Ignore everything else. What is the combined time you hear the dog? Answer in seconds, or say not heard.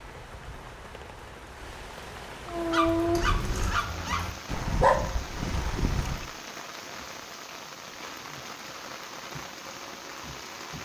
4 s.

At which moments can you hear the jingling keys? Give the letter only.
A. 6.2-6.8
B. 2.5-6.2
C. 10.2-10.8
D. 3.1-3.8
D.